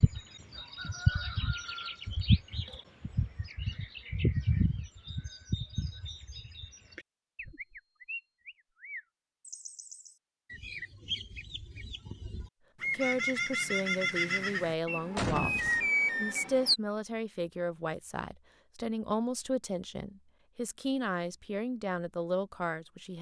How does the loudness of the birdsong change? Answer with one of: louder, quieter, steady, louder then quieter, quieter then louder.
quieter then louder.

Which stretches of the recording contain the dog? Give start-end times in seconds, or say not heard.
not heard.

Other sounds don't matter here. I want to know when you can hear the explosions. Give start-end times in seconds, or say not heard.
15.2-15.9.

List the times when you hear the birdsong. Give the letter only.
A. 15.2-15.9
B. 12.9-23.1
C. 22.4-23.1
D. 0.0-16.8
D.